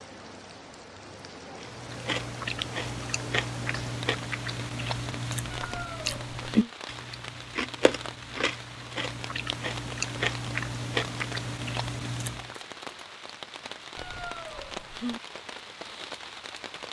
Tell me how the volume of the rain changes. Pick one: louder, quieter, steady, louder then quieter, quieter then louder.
steady.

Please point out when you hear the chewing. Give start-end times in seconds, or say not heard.
1.6-12.6.